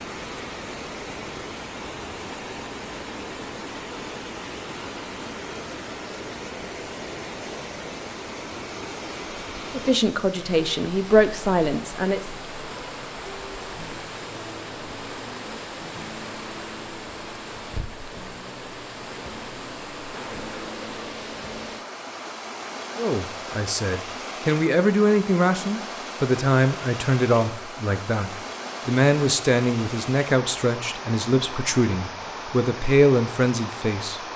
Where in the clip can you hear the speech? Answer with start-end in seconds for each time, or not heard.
9.7-12.2, 22.9-34.2.